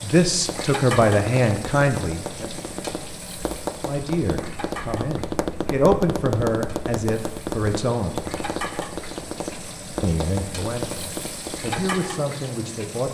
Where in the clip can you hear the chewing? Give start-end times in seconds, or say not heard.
not heard.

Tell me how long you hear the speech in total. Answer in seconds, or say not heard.
10 s.